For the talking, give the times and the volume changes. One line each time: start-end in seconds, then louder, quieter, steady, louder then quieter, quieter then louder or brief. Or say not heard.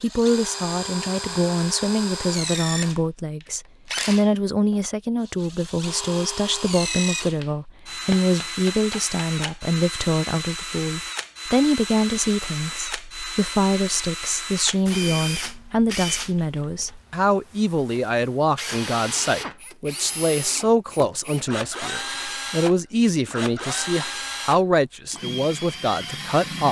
0.0-26.6 steady.